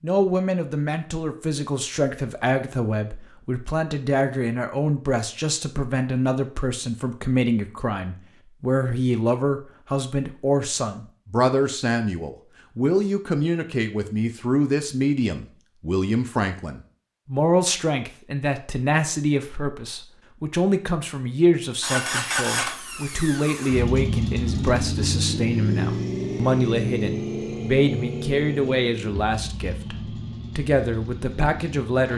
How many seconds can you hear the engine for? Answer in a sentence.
The engine can be heard for 10 seconds in total.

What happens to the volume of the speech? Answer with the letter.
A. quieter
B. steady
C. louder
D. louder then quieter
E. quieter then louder
B.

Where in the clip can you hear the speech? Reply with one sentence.
You can hear the speech from 0.0 to 32.1 s.